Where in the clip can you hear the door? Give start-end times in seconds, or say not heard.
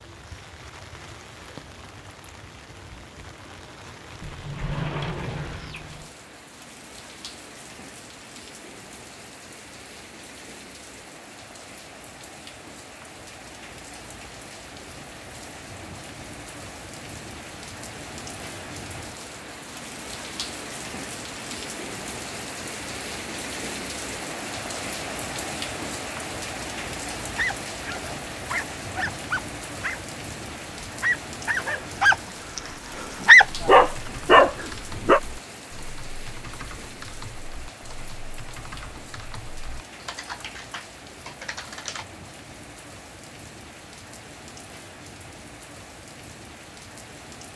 4.2-6.1.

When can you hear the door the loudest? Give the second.
5 s.